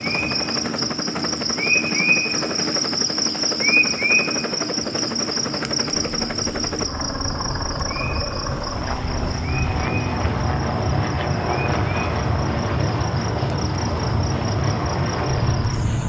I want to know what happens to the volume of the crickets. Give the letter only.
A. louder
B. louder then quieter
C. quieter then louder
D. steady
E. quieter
E.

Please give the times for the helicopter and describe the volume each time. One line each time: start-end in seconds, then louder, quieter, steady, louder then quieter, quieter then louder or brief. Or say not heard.
0.0-16.0 steady.